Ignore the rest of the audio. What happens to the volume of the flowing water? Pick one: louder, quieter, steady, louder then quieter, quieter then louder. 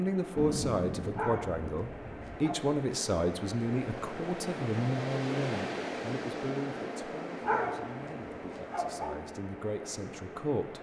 louder then quieter.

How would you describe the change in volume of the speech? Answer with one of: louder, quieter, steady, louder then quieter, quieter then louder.
quieter.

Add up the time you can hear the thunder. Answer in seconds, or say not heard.
2 s.